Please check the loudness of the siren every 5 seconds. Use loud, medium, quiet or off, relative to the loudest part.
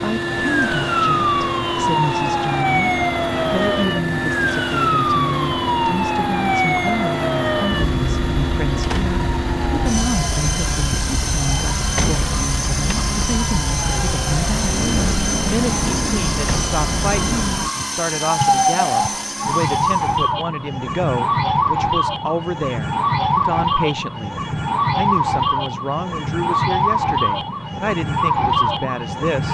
loud, loud, medium, loud, loud, loud.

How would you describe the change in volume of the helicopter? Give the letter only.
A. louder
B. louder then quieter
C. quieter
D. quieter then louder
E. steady
E.